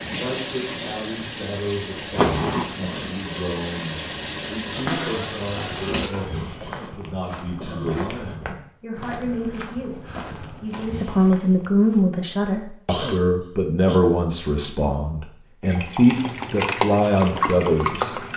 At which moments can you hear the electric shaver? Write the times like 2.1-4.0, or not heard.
not heard.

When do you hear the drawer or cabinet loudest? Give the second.
5 s.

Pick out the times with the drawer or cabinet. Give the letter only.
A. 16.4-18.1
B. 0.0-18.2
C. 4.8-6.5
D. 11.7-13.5
C.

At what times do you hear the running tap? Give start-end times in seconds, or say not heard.
0.0-6.2, 15.6-18.3.